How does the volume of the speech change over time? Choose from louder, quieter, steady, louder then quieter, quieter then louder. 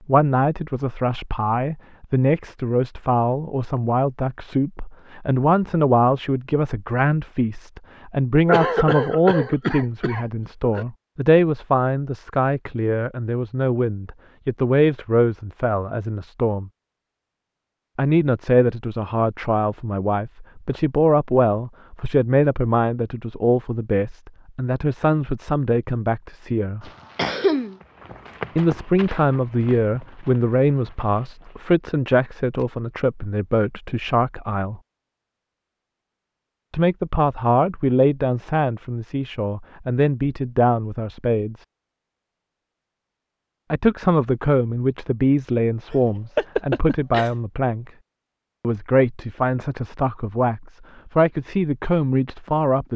steady.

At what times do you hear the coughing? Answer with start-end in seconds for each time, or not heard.
8.4-10.8, 26.8-27.8, 45.9-47.3.